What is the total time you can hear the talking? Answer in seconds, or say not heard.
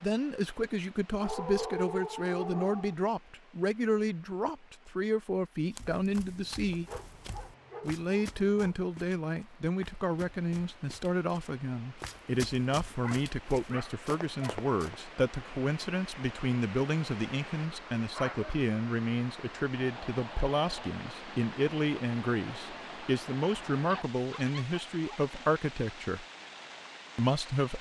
26 s.